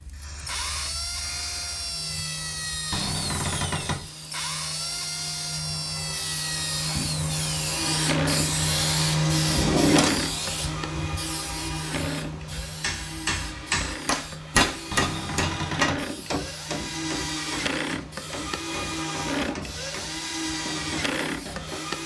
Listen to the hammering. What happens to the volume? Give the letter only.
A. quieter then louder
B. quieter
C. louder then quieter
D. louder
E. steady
B.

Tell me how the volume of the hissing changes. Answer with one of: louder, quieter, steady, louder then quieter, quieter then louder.
louder then quieter.